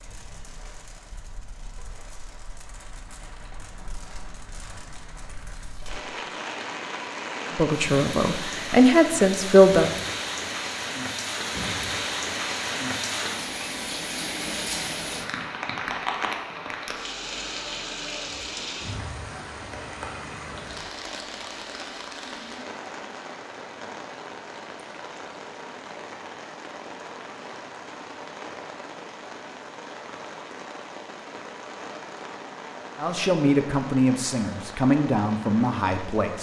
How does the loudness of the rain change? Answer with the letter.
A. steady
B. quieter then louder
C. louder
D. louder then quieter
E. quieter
D.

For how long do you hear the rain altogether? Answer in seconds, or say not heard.
36 s.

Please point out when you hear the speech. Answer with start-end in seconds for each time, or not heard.
7.5-9.9, 33.0-36.3.